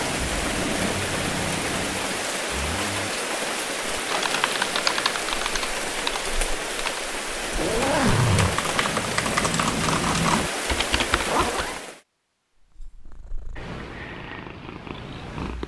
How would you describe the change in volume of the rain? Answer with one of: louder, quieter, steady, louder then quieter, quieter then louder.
steady.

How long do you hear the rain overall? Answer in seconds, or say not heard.
12 s.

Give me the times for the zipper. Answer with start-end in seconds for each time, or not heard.
2.5-3.1, 7.5-8.6, 11.2-11.8.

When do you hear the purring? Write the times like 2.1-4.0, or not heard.
0.0-2.3, 12.6-15.6.